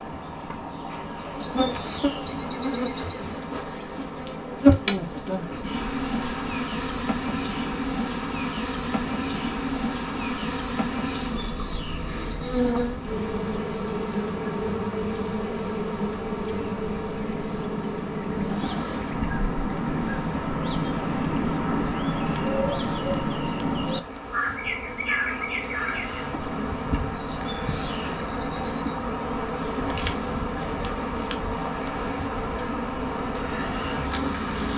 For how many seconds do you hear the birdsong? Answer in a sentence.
You can hear the birdsong for 35 seconds altogether.